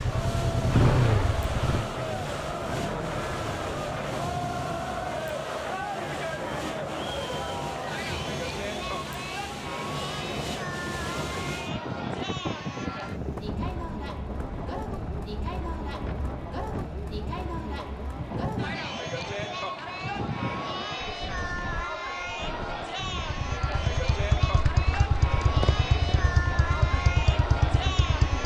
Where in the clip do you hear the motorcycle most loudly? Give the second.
1 s.